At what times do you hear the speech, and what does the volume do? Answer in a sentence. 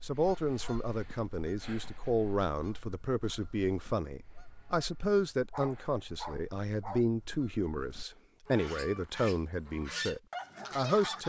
The speech can be heard from 0.0 to 11.2 s, at a steady volume.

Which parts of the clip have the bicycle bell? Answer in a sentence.
You can't hear the bicycle bell here.